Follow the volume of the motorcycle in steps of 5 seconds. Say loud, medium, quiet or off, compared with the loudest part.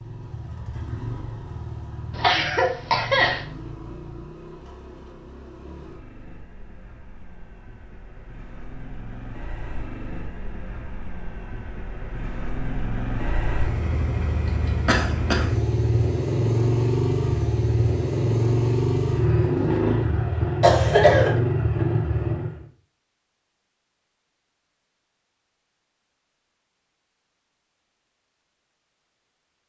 quiet, quiet, medium, loud, loud, off.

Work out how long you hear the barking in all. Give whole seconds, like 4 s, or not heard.
not heard.